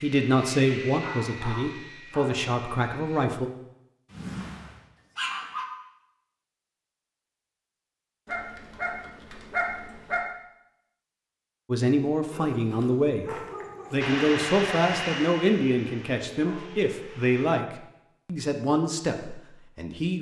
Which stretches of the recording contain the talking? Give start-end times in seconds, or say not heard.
0.0-3.5, 11.7-13.2, 13.9-20.1.